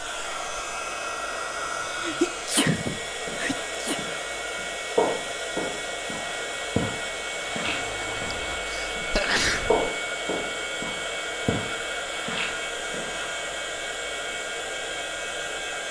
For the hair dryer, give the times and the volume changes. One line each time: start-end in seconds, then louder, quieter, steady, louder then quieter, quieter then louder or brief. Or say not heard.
0.0-15.8 steady.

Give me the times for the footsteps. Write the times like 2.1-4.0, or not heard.
3.0-13.5.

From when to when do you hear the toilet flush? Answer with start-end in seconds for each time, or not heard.
7.5-8.6.